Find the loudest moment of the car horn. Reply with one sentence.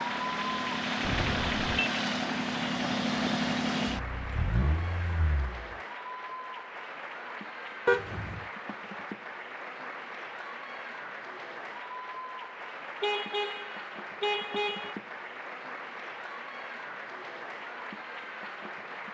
The volume of the car horn peaks at 8 seconds.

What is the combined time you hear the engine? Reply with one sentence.
You can hear the engine for 6 seconds altogether.